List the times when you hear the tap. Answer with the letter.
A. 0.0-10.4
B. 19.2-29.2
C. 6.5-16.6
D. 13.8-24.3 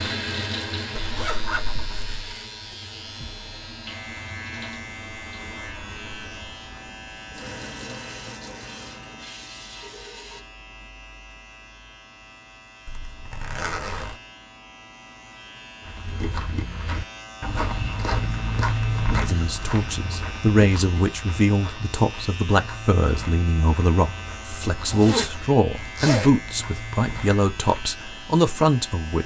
A.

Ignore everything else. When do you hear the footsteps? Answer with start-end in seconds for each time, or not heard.
15.8-27.9.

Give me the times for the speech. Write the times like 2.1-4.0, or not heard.
19.2-29.2.